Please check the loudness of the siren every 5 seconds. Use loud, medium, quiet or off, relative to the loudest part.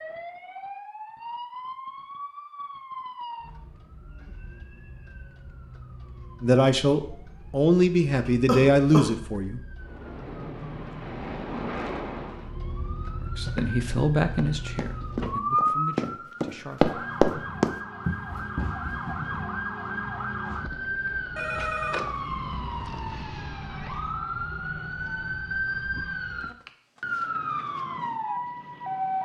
medium, quiet, medium, loud, loud, loud.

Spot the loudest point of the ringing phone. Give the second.
22 s.